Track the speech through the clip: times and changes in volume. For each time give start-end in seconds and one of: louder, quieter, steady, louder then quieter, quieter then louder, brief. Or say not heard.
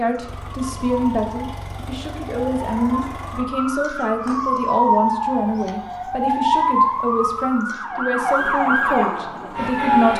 0.0-10.1 steady.